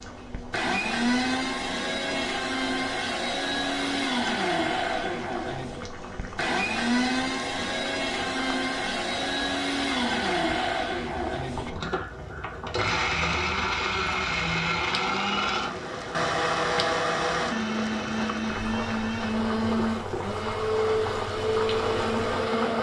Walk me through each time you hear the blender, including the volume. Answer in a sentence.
The blender can be heard from 0.0 to 22.7 s, at a steady volume.